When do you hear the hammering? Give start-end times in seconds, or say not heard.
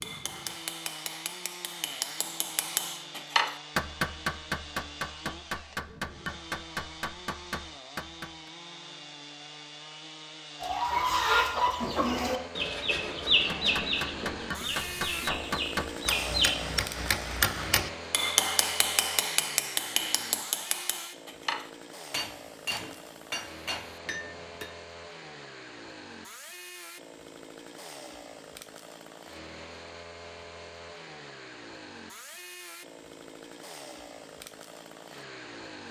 0.0-8.5, 13.3-24.8.